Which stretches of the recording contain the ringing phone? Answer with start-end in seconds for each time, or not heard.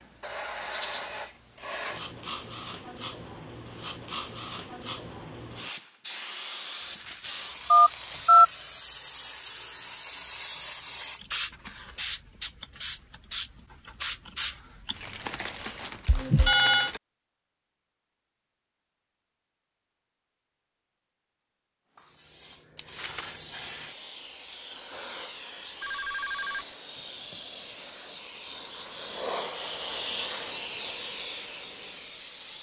7.7-8.4, 16.1-16.9, 25.8-26.6.